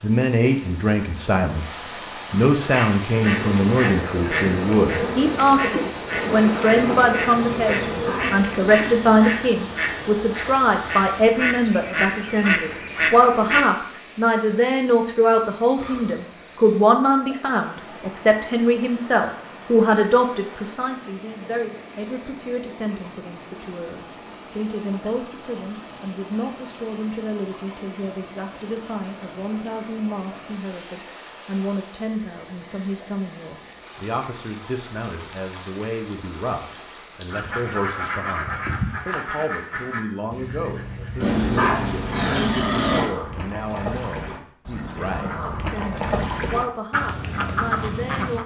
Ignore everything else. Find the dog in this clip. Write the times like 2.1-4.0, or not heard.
7.7-9.2, 41.2-43.1.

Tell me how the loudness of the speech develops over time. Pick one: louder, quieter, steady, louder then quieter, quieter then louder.
quieter.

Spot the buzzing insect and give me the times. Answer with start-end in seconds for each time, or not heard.
3.2-8.8.